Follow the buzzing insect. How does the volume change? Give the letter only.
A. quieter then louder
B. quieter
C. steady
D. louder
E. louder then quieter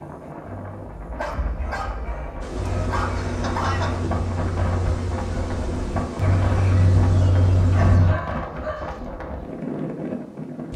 C.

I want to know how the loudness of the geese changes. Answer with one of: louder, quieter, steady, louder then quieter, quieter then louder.
louder.